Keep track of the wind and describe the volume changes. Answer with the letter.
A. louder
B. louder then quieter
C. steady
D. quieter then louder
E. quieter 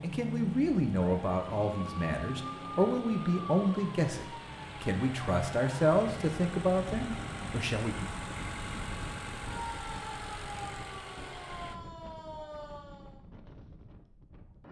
E.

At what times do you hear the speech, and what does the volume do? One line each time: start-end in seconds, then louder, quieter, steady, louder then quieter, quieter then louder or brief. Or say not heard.
0.0-8.1 steady.